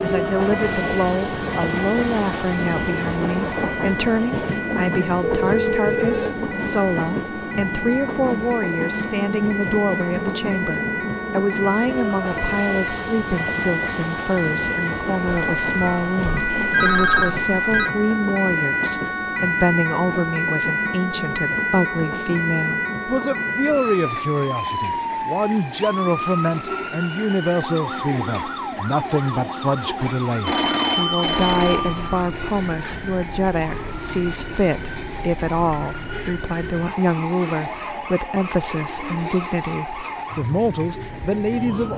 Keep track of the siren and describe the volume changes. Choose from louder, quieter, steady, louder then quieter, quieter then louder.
louder then quieter.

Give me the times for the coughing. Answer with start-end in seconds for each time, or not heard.
not heard.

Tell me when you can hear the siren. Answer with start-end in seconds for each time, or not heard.
0.0-41.9.